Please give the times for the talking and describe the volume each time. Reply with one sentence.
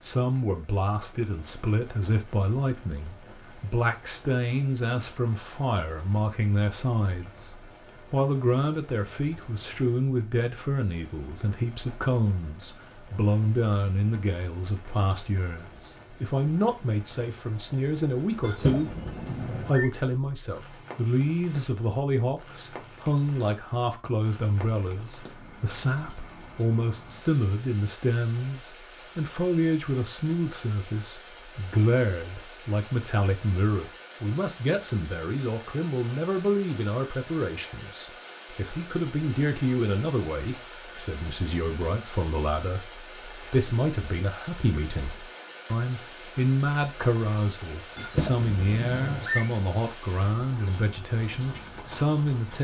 You can hear the talking from 0.0 to 52.5 s, at a steady volume.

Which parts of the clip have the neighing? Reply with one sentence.
You can hear the neighing from 18.4 to 19.9 s and from 48.0 to 49.5 s.